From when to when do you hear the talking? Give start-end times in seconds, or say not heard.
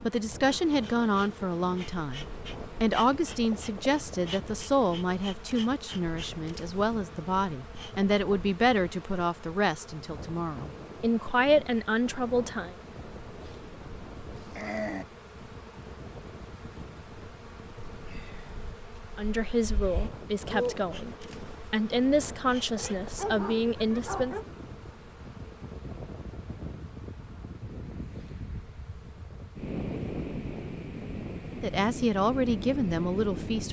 0.0-12.8, 19.1-24.4, 31.5-33.6.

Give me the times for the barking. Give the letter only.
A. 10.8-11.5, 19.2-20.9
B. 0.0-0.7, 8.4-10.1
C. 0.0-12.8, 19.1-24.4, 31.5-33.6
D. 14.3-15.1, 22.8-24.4
D.